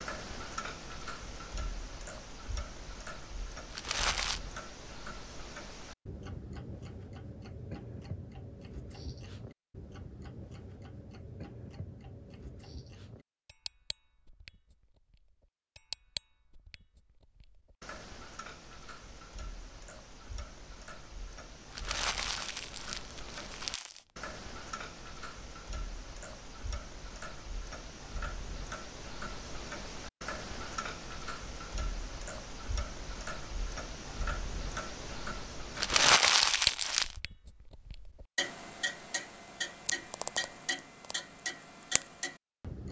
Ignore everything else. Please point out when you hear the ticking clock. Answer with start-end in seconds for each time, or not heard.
0.0-42.8.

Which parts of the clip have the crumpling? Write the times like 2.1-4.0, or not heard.
3.7-4.4, 21.7-24.0, 35.8-37.1.